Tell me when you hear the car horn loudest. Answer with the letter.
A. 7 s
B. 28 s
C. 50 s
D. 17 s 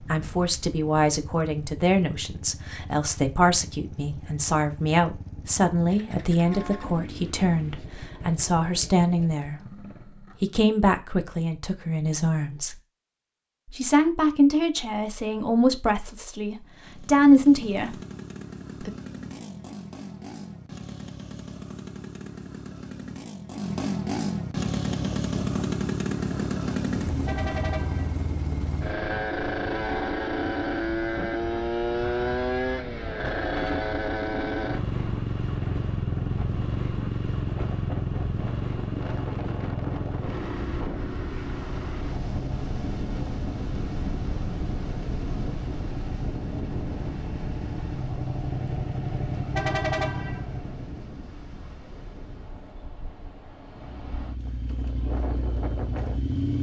C.